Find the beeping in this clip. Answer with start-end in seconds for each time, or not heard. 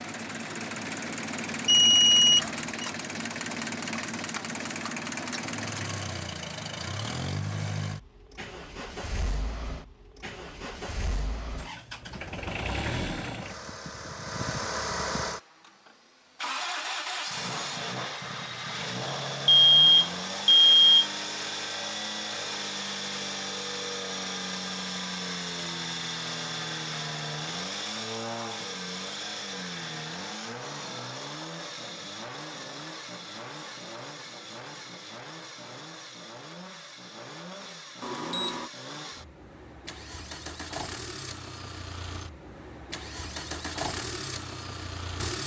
1.6-2.9, 19.4-21.1, 38.0-38.7.